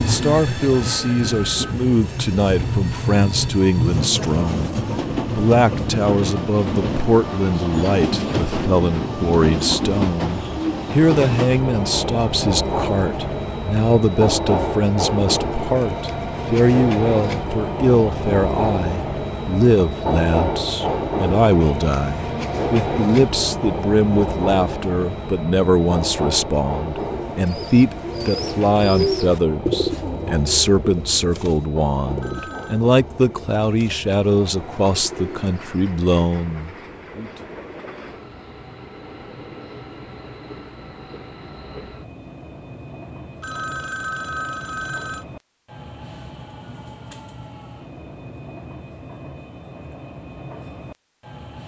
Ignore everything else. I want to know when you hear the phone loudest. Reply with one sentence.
The volume of the phone peaks at 44 seconds.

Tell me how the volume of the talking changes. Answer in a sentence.
The volume of the talking stays about the same.